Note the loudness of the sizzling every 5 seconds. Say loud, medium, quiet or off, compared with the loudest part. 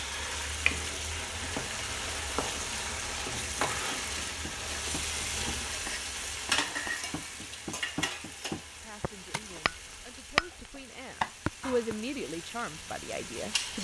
loud, loud, medium.